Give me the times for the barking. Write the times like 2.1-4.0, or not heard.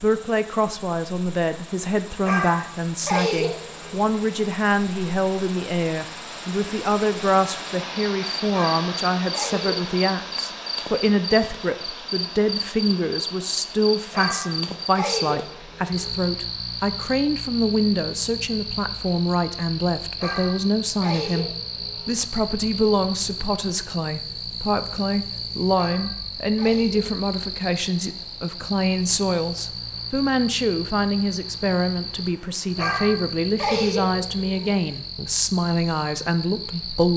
2.2-4.1, 8.5-9.9, 14.1-16.1, 20.1-22.1, 25.8-27.1, 32.8-34.8.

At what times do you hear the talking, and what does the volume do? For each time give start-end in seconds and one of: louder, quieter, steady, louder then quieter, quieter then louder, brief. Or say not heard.
0.0-37.1 steady.